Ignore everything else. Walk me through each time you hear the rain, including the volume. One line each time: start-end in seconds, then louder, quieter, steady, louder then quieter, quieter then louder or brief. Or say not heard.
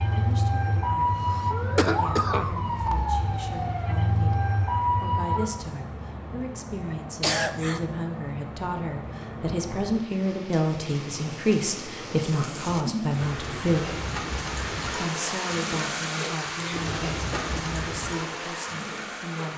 0.0-19.5 louder.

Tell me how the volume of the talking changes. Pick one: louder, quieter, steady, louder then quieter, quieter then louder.
louder then quieter.